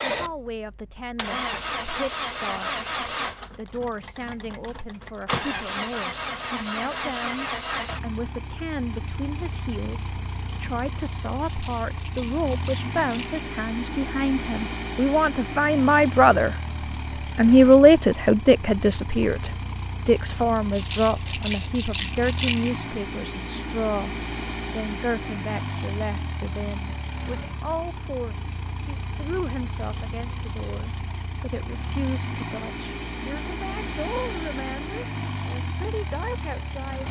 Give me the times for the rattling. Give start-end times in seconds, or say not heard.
11.4-13.4, 20.7-22.8.